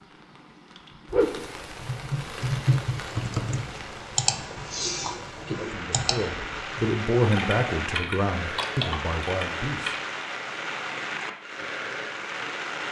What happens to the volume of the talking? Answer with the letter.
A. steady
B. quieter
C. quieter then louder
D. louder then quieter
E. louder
D.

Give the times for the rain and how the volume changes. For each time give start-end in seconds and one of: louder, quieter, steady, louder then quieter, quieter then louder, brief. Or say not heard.
0.0-12.8 quieter then louder.